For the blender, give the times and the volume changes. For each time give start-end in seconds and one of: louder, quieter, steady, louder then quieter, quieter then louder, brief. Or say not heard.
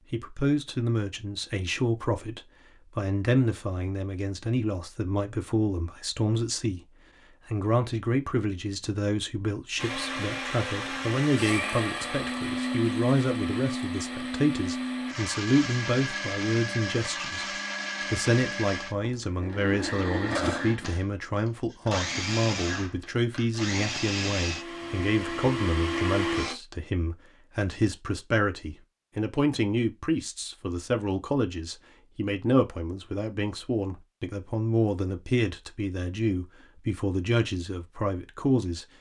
9.8-26.6 steady.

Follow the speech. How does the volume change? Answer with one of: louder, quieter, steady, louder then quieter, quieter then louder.
steady.